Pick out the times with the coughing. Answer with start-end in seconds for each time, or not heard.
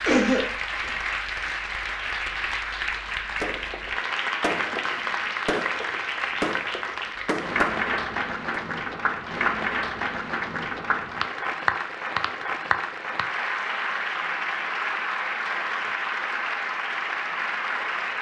0.1-0.9.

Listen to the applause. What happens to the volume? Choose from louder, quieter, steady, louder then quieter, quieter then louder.
steady.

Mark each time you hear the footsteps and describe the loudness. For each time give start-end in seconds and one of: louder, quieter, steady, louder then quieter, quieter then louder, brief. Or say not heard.
not heard.